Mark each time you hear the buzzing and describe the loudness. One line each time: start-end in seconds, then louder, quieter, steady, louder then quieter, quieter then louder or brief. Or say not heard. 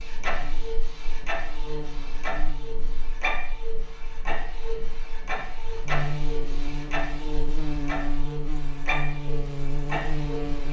0.0-10.6 louder.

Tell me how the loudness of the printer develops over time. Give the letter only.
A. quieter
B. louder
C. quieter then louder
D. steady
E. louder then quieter
D.